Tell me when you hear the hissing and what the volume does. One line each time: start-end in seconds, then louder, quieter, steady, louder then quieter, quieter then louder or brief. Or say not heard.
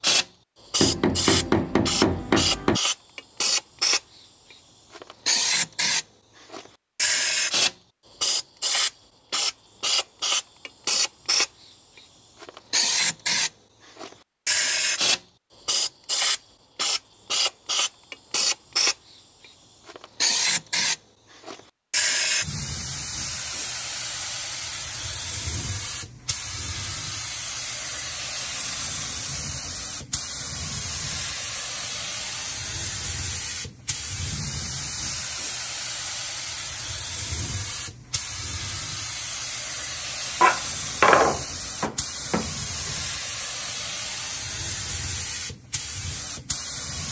0.0-47.0 quieter.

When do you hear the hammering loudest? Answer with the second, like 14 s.
41 s.